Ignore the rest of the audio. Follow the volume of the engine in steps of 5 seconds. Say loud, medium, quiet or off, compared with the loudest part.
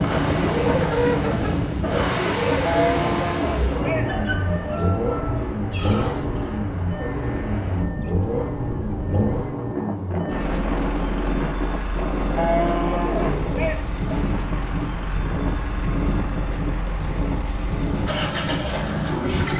loud, loud, medium, loud.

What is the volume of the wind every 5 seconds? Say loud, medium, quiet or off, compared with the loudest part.
loud, medium, loud, loud.